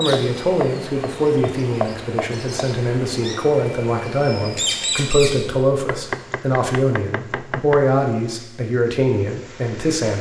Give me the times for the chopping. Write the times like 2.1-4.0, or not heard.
0.1-2.7, 5.8-7.8.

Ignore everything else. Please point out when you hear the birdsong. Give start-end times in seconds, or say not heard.
0.0-5.5.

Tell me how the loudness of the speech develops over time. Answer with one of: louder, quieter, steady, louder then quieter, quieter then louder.
steady.